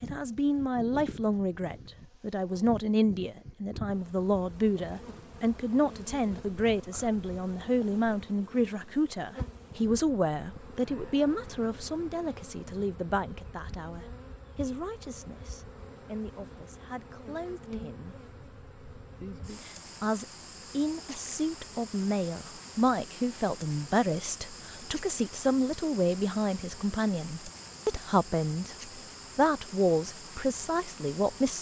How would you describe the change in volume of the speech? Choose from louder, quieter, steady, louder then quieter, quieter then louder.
quieter then louder.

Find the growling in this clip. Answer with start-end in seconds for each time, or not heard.
not heard.